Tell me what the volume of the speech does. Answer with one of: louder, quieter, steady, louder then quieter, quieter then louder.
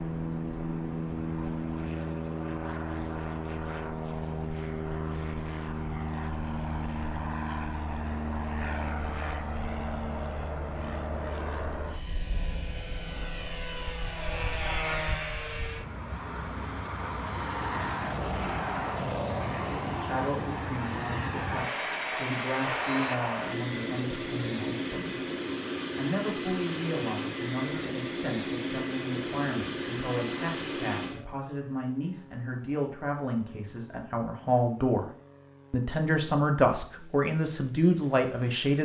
louder.